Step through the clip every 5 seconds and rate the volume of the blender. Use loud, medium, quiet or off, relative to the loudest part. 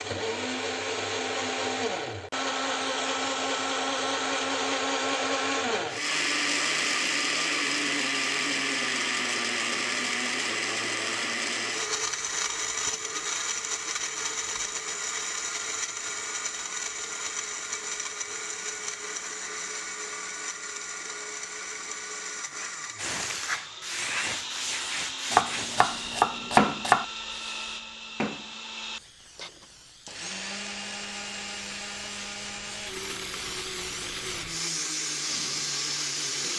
loud, loud, loud, medium, medium, medium, medium, medium.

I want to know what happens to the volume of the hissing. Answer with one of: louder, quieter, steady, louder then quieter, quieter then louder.
quieter then louder.